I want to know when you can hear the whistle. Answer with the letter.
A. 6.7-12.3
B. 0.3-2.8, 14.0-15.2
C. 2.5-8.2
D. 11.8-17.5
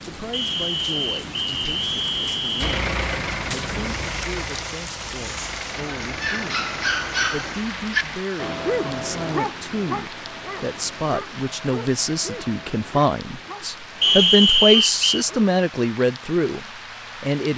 B.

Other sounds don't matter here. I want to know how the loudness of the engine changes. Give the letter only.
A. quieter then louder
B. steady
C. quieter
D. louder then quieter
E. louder
C.